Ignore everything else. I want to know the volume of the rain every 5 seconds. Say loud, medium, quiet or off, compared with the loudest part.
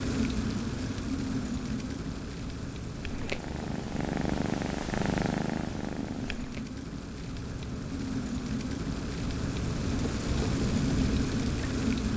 medium, medium, loud.